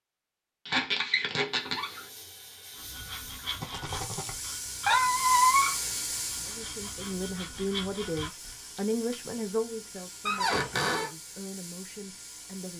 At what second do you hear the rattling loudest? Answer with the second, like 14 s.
4 s.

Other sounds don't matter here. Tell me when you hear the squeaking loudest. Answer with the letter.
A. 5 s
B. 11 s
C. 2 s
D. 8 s
A.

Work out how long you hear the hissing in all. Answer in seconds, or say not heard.
11 s.